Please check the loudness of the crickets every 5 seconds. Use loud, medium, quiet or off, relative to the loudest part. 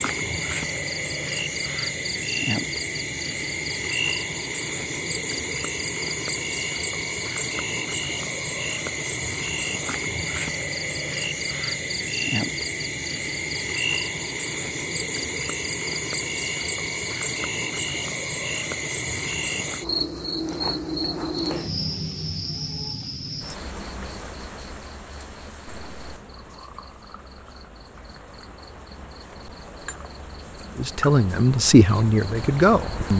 loud, loud, loud, loud, loud, quiet, medium.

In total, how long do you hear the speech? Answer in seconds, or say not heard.
2 s.